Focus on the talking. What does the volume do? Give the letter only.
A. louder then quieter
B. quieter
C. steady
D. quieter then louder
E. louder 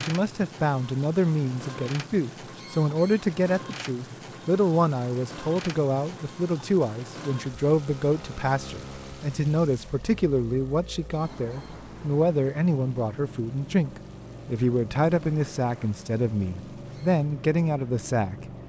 C.